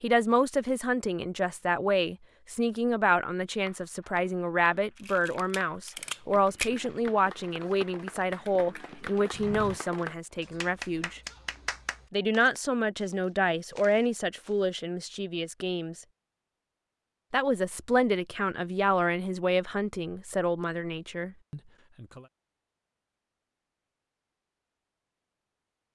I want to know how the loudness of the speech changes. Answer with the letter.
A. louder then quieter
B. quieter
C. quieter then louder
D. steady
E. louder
D.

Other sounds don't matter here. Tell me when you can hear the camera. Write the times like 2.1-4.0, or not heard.
5.0-6.7.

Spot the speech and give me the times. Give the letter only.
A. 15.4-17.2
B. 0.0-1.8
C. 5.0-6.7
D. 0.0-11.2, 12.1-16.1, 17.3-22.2
D.